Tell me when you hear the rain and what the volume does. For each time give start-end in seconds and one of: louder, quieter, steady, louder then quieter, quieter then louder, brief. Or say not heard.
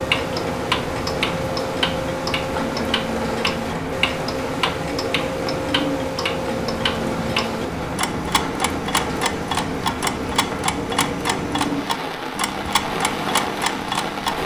0.0-14.4 steady.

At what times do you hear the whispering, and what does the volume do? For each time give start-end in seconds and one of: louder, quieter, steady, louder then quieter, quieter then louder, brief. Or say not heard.
not heard.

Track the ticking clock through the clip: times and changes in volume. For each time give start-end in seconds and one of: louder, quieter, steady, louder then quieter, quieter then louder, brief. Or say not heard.
0.0-14.4 steady.